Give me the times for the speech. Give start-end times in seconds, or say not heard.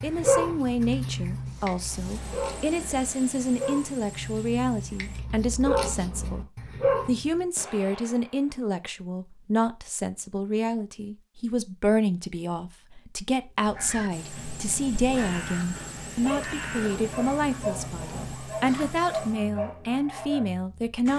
0.0-6.5, 7.0-21.1.